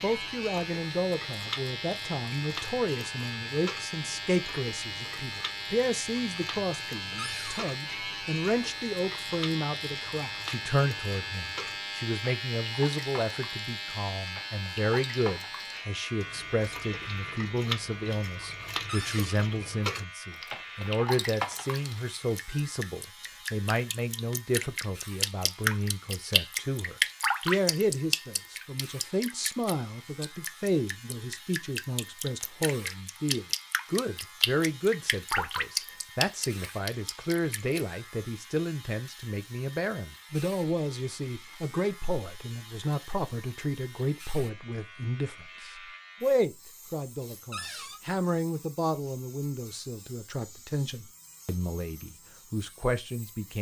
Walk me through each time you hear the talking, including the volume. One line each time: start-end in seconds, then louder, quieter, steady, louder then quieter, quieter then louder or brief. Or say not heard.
0.0-53.5 steady.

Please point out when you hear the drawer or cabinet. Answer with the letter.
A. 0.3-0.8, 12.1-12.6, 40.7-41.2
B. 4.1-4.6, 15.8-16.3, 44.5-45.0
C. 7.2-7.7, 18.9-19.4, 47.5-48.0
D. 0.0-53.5
C.